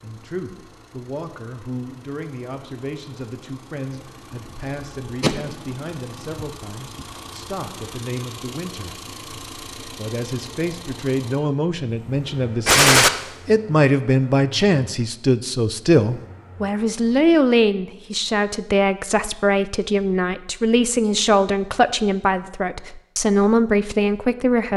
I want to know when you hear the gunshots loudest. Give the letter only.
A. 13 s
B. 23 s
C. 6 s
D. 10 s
A.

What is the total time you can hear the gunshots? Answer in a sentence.
The gunshots can be heard for 3 seconds in total.